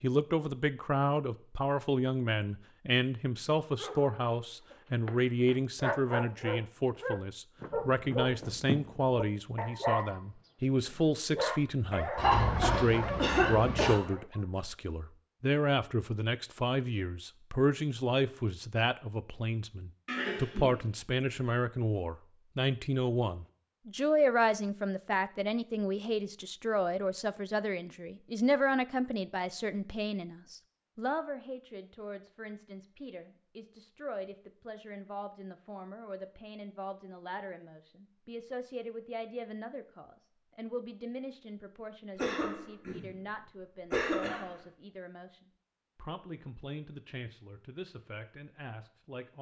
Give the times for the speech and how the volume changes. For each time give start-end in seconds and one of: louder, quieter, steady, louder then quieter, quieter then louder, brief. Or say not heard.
0.0-49.3 quieter.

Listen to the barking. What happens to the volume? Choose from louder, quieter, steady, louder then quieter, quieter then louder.
steady.